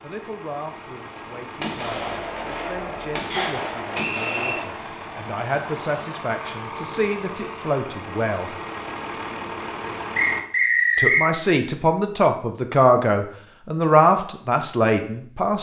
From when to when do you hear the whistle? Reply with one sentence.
You can hear the whistle from 3.3 to 4.5 s and from 10.2 to 11.2 s.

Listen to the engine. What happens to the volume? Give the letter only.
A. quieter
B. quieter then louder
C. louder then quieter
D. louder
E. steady
D.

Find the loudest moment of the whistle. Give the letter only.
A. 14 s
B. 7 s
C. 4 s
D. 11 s
D.